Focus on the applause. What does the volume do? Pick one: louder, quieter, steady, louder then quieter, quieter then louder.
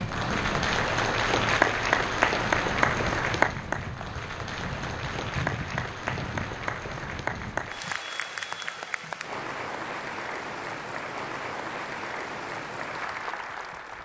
quieter.